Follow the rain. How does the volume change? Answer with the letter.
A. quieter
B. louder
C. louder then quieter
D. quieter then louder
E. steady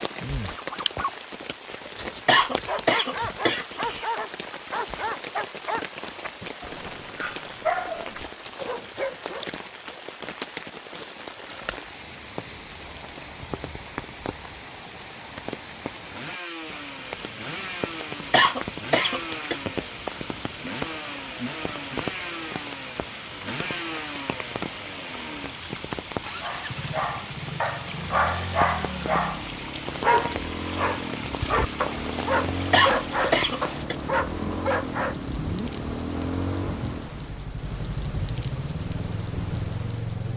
E.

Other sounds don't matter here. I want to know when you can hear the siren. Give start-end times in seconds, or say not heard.
not heard.